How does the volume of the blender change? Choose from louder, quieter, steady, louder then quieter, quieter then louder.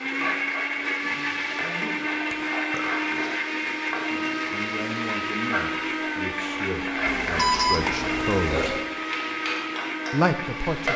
steady.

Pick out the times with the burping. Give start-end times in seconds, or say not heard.
2.3-2.9, 7.8-8.8.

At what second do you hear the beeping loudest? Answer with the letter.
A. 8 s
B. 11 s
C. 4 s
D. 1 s
A.